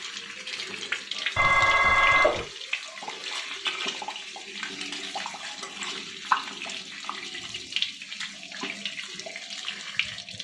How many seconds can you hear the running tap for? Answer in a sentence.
The running tap can be heard for 10 seconds in total.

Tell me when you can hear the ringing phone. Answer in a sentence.
You can hear the ringing phone from 1.4 to 2.5 s.